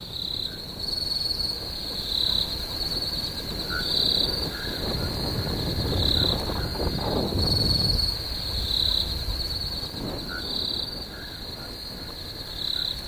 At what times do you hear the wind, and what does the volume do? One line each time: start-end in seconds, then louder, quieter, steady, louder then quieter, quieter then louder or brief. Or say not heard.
0.0-13.0 louder then quieter.